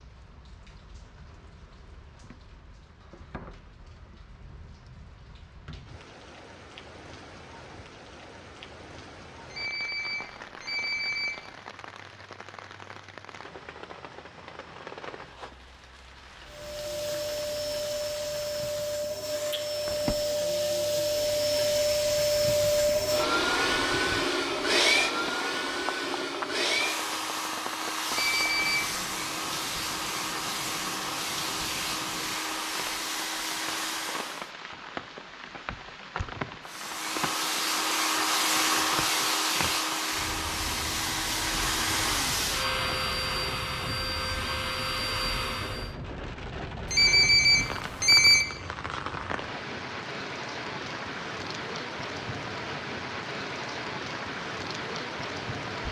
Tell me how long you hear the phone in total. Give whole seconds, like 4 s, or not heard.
4 s.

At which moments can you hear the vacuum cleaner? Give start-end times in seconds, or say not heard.
16.4-34.5, 36.6-46.0.